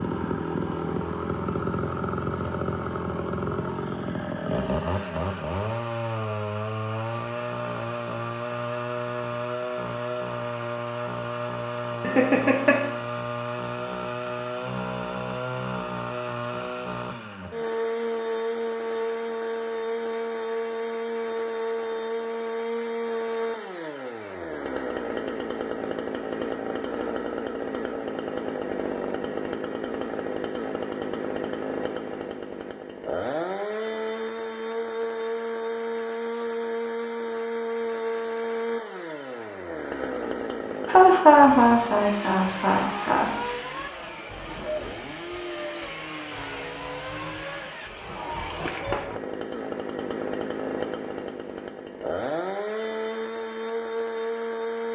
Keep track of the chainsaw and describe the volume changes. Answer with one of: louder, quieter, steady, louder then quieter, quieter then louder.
steady.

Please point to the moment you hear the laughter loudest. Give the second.
41 s.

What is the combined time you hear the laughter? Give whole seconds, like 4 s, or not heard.
3 s.